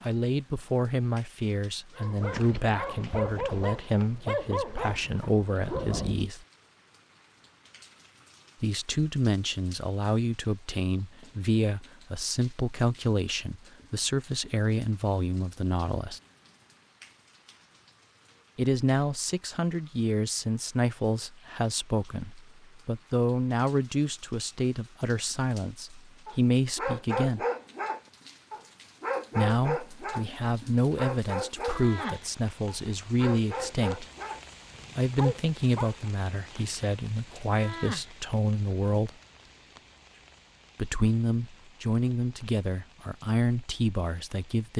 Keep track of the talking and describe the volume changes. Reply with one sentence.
The volume of the talking stays about the same.